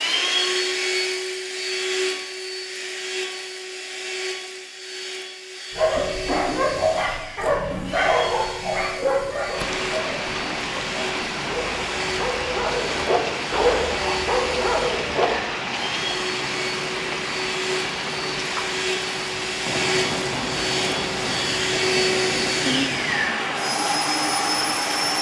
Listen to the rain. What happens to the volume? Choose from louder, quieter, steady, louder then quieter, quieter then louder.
steady.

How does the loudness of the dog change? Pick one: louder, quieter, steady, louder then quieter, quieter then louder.
quieter then louder.